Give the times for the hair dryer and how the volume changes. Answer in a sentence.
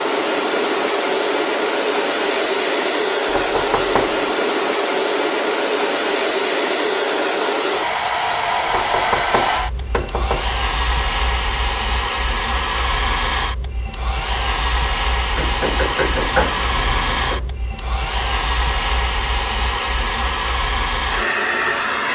The hair dryer can be heard from 0.0 to 22.1 s, at a steady volume.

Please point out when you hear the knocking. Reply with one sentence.
You can hear the knocking from 3.2 to 4.2 s, from 8.7 to 10.5 s and from 15.3 to 17.4 s.